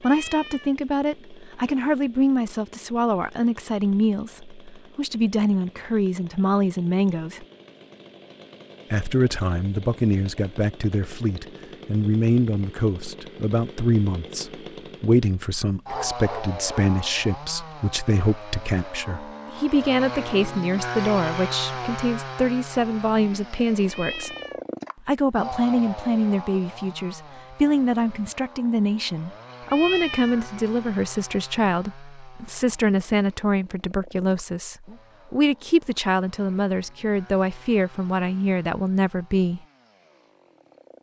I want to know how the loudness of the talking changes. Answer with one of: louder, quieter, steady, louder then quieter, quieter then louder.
steady.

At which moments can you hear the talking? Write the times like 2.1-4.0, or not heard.
0.0-7.5, 8.9-24.4, 25.1-39.6.